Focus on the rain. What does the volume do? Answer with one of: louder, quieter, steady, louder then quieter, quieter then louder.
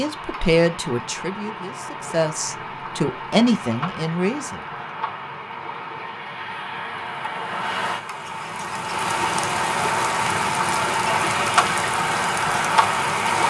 louder.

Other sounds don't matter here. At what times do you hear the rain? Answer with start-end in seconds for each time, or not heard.
0.0-13.4.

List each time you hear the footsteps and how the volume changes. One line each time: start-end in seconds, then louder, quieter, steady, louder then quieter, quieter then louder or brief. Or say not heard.
not heard.